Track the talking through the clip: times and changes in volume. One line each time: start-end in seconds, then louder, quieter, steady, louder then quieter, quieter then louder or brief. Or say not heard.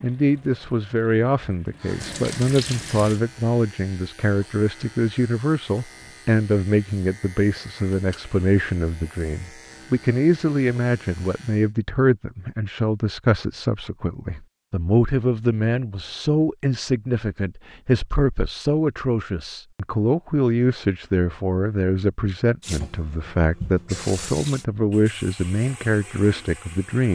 0.0-27.1 steady.